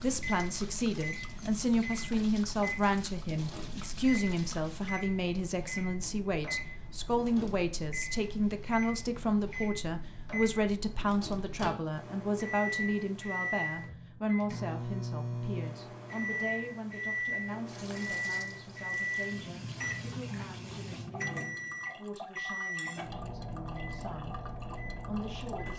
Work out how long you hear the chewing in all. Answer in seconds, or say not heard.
not heard.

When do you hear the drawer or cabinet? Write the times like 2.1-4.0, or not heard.
not heard.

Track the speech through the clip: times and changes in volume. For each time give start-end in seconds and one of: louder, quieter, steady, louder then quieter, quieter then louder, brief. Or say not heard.
0.0-24.4 quieter
25.1-25.7 brief.